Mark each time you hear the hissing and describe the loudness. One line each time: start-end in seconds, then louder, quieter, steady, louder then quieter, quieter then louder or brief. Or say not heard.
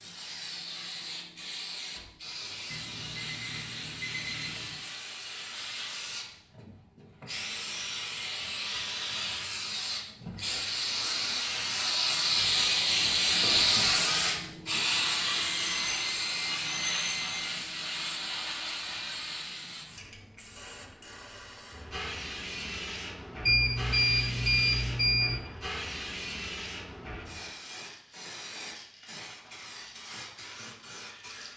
0.0-31.5 louder then quieter.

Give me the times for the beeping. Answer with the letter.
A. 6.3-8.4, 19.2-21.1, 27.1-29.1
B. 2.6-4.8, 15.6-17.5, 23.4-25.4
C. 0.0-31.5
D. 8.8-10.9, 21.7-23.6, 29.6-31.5
B.